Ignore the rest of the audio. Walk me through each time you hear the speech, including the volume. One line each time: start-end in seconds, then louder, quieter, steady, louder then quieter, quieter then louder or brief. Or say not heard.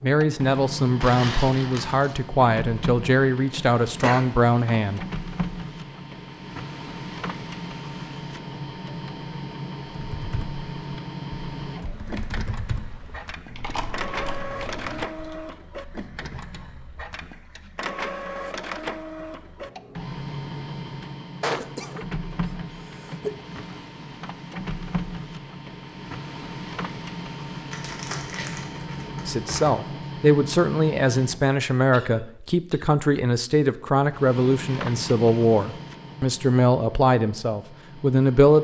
0.0-5.0 steady
29.2-38.5 steady.